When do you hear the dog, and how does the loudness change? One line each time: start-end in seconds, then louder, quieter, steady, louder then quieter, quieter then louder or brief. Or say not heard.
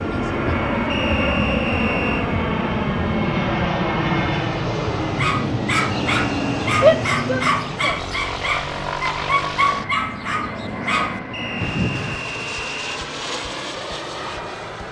5.2-12.3 steady.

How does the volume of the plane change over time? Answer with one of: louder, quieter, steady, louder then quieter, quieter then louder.
quieter.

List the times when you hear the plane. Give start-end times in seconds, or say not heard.
0.0-14.8.